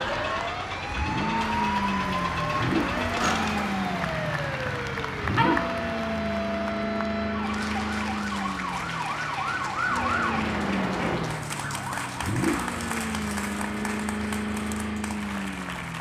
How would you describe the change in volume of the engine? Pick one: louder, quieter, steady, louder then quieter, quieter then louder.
steady.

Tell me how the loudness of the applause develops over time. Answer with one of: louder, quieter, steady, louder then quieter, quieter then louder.
steady.